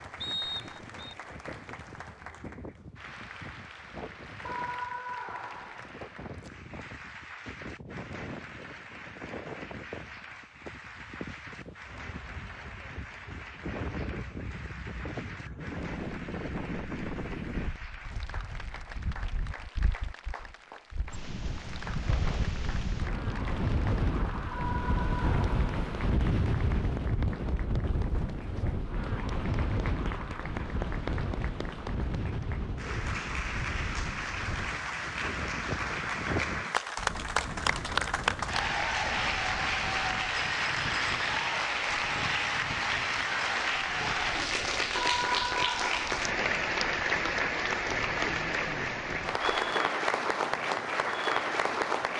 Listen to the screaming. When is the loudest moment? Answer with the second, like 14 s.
45 s.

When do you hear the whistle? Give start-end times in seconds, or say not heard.
0.2-1.1.